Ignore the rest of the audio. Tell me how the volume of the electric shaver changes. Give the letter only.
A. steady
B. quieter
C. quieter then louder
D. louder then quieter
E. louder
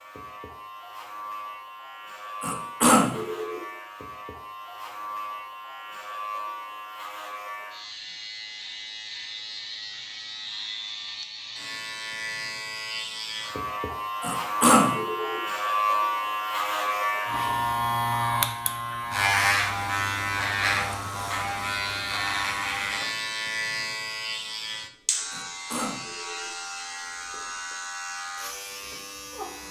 D.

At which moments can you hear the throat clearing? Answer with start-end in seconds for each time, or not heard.
2.4-3.6, 14.2-15.4, 25.3-26.5.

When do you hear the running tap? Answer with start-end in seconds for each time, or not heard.
not heard.